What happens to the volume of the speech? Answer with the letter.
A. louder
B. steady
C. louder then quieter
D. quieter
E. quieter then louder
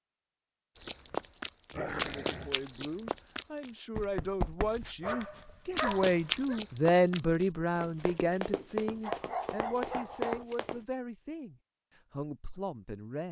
C.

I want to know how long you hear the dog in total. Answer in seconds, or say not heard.
4 s.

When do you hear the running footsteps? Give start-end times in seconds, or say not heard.
0.8-10.8.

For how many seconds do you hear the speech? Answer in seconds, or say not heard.
11 s.